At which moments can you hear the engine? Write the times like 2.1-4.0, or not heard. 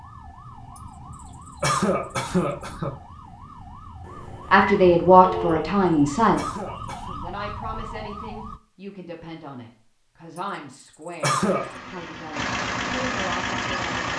11.3-14.1.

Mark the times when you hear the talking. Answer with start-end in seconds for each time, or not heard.
4.5-14.1.